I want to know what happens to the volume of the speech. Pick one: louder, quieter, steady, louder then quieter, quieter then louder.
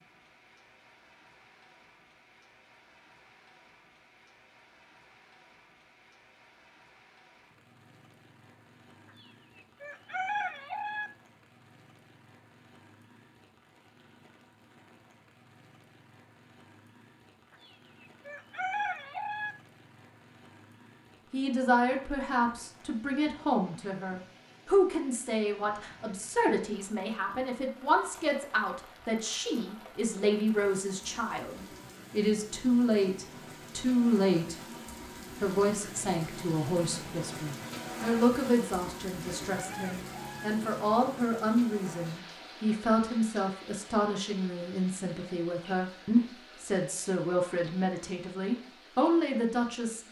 steady.